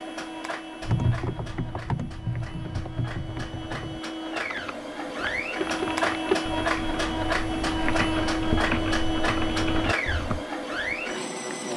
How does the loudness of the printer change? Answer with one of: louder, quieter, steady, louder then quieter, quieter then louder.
louder.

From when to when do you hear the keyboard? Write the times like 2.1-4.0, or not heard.
0.8-10.4.